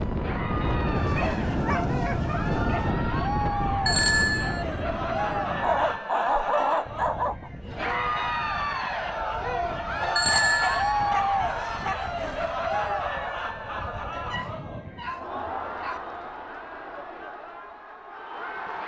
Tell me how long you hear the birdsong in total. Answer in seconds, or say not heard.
not heard.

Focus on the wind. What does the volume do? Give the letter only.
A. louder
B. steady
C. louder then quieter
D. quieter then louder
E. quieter
E.